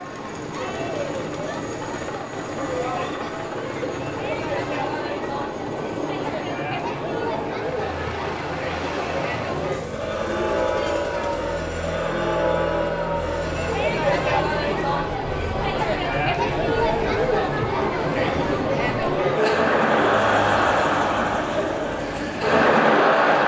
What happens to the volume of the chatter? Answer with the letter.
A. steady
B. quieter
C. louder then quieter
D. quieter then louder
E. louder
E.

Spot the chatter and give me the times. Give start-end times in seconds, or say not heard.
0.0-23.4.